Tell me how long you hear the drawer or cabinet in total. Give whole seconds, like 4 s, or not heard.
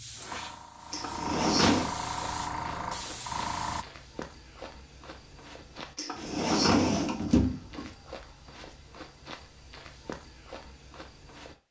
3 s.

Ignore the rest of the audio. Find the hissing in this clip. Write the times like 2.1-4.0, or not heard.
0.0-3.9.